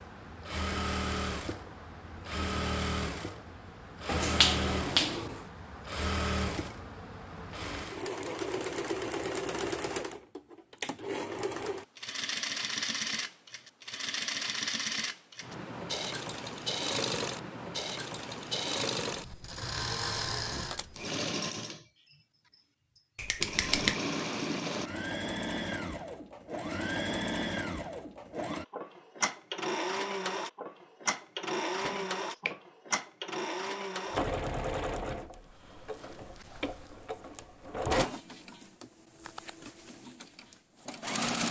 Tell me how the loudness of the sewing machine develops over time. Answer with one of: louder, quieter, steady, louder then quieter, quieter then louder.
steady.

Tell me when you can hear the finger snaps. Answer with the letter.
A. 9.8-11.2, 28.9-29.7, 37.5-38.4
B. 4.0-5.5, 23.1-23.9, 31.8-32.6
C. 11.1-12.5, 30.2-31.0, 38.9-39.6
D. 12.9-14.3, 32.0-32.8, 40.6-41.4
B.